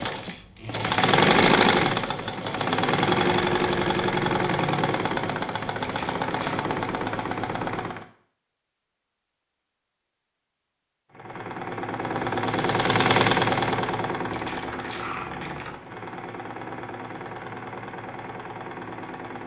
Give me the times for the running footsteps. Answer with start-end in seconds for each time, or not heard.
not heard.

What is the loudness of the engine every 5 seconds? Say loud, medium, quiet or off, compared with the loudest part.
loud, medium, loud, quiet.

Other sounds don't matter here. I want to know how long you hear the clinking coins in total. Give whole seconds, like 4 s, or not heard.
2 s.